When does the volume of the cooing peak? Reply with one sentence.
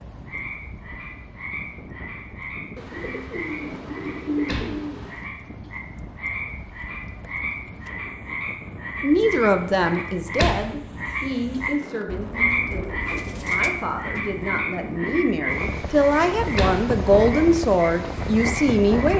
The loudest moment of the cooing is at 4 seconds.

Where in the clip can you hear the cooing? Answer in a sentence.
The cooing can be heard from 2.8 to 5.3 s and from 12.1 to 14.4 s.